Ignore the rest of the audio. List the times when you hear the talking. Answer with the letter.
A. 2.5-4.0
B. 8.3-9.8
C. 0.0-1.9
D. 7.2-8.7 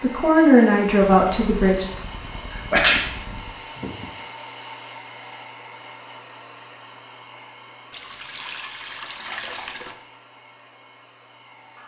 C.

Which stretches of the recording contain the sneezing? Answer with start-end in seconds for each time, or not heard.
2.5-4.0.